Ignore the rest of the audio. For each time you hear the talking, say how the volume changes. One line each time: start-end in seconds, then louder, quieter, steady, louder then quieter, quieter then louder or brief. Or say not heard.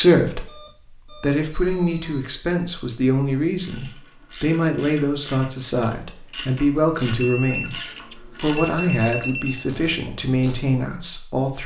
0.0-11.6 steady.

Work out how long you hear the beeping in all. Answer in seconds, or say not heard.
4 s.